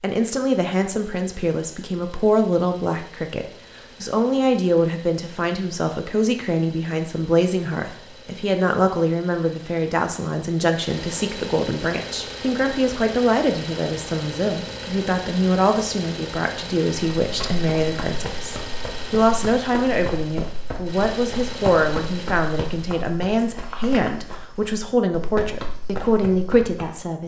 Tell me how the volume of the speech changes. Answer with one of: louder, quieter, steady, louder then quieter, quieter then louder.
steady.